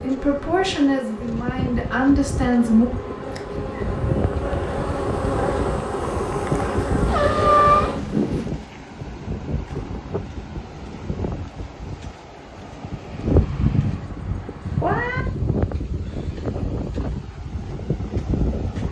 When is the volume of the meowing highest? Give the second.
8 s.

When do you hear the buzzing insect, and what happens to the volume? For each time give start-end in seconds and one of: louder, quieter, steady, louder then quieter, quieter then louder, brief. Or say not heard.
0.0-8.7 louder.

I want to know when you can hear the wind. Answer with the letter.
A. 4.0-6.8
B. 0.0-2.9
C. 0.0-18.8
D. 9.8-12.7
C.